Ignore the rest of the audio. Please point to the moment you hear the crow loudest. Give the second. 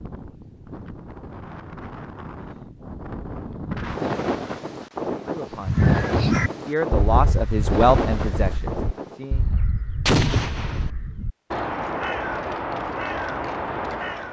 6 s.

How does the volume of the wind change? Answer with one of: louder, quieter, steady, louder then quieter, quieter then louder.
louder.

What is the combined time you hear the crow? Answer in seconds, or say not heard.
9 s.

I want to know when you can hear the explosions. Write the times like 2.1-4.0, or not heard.
10.1-10.9.